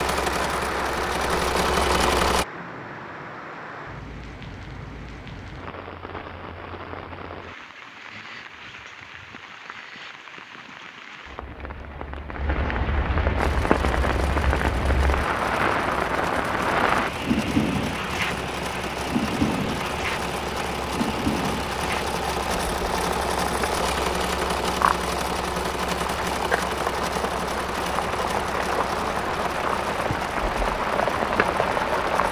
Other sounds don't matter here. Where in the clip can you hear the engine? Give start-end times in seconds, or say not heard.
0.0-2.5, 13.3-32.2.